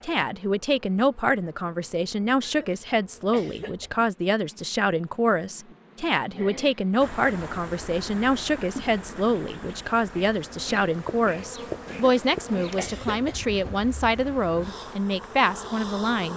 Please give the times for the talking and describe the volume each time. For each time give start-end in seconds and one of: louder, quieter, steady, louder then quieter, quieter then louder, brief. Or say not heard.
0.0-16.3 steady.